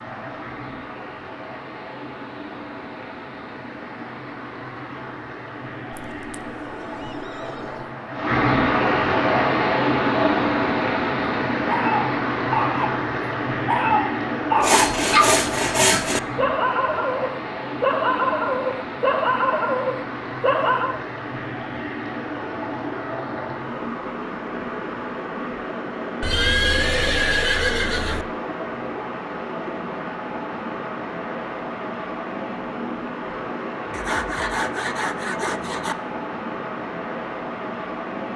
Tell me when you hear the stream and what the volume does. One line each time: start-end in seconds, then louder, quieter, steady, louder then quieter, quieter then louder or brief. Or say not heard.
0.0-38.3 louder then quieter.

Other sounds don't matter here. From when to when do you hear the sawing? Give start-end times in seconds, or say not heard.
14.6-16.2, 33.9-36.0.